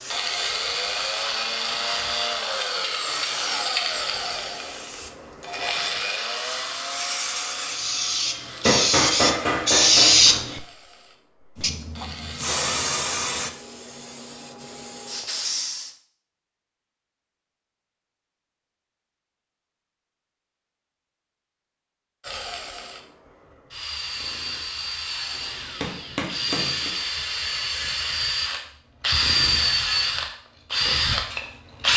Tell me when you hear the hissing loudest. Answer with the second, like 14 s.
10 s.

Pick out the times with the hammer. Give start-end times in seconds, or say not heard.
8.7-10.4, 25.4-26.9.